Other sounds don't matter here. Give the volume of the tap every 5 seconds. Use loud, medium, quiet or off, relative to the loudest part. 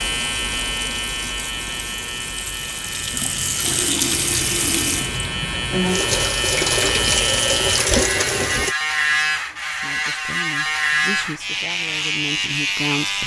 medium, loud, off.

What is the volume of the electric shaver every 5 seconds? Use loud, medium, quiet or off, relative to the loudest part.
medium, loud, loud.